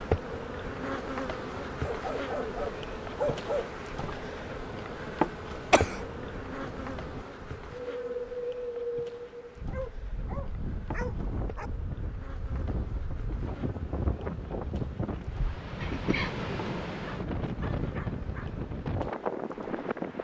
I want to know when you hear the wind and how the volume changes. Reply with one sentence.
The wind can be heard from 0.0 to 20.1 s, getting louder.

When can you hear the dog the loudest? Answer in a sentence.
The loudest moment of the dog is at 3 seconds.